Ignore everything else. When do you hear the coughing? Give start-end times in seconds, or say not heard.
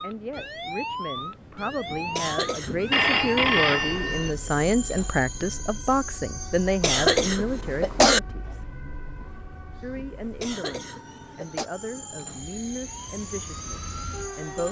2.1-2.8, 6.8-8.2, 10.4-11.7.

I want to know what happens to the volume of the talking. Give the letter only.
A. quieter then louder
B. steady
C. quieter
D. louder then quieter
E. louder
D.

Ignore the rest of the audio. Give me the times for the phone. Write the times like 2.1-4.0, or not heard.
2.9-4.3.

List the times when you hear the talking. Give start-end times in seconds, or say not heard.
0.0-8.7, 9.8-14.6.